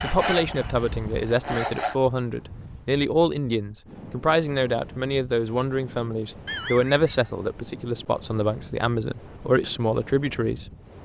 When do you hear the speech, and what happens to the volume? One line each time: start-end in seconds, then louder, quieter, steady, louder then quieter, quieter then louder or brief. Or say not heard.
0.0-10.7 steady.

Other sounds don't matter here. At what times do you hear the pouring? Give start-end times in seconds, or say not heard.
not heard.